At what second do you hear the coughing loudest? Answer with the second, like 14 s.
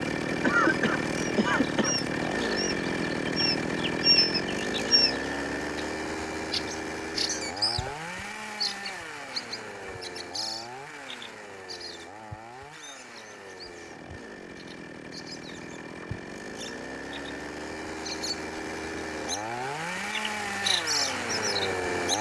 1 s.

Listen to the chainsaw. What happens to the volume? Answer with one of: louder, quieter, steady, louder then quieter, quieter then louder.
quieter then louder.